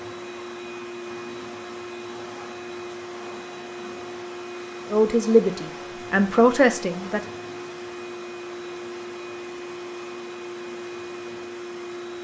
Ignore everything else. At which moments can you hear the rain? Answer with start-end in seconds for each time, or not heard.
not heard.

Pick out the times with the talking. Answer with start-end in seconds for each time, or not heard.
4.9-7.3.